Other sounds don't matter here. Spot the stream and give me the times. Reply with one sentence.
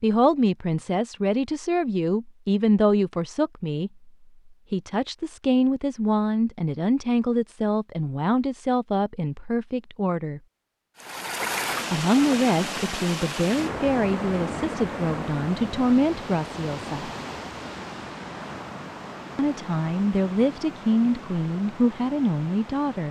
You can hear the stream from 10.9 to 23.0 s.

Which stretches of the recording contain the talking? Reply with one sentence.
You can hear the talking from 0.0 to 4.1 s, from 4.7 to 10.4 s, from 11.9 to 17.1 s and from 19.4 to 23.0 s.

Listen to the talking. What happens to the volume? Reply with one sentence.
The volume of the talking stays about the same.